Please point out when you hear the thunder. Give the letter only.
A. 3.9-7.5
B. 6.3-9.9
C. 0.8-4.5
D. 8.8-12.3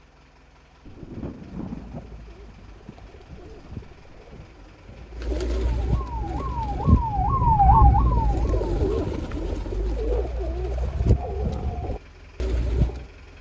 C.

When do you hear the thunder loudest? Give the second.
2 s.